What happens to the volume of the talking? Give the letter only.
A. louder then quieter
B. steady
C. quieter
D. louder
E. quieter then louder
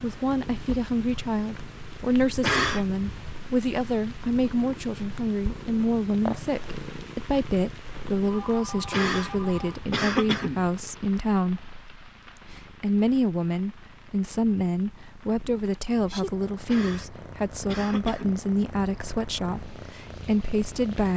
B.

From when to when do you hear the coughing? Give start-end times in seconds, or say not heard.
2.4-3.3, 8.8-10.7, 16.6-18.4.